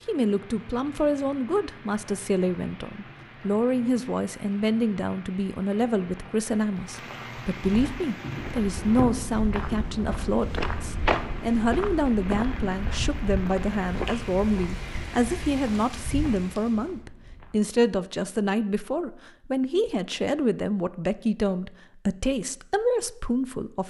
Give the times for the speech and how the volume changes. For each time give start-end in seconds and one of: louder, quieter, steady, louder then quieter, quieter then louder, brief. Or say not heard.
0.1-23.8 steady.